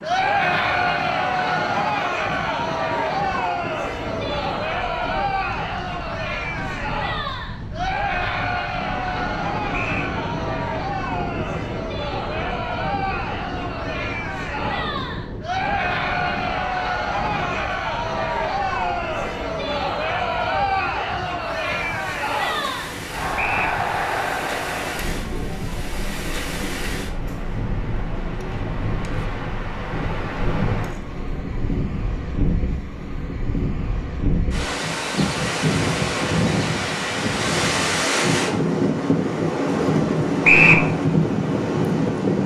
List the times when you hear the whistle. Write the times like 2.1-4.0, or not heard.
9.7-10.2, 23.4-23.8, 40.4-40.9.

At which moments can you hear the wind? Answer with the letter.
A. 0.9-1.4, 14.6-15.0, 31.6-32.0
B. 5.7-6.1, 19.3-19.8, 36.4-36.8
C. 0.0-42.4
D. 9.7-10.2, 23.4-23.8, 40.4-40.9
C.